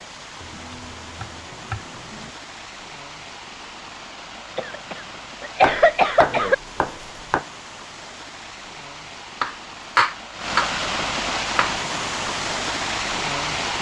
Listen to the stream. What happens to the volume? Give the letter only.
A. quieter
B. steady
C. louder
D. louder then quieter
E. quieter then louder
C.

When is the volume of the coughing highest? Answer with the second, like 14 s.
6 s.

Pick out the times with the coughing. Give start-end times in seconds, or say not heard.
4.5-6.5.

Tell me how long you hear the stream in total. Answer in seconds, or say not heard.
14 s.